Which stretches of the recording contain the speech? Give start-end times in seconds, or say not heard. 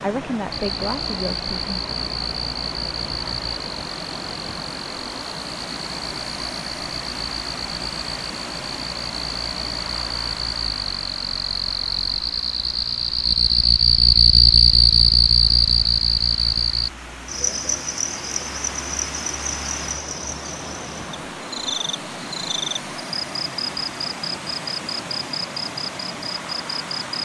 0.0-1.8.